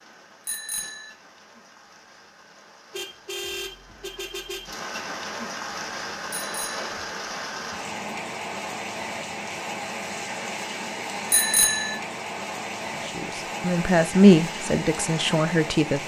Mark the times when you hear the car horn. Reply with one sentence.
The car horn can be heard from 2.9 to 4.8 s.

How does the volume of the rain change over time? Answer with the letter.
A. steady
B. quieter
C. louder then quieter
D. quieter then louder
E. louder
E.